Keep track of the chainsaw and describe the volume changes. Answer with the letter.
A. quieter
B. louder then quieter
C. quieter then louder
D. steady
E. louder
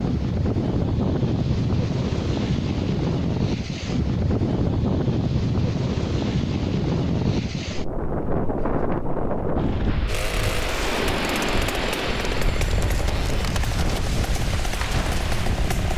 D.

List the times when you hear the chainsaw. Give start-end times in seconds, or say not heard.
10.1-15.9.